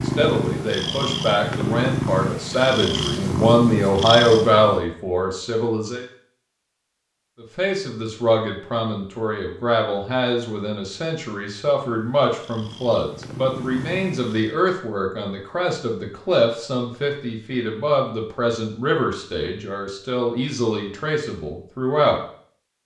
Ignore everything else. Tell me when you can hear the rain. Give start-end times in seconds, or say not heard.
not heard.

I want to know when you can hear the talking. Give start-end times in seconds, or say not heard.
0.0-6.0, 7.4-22.2.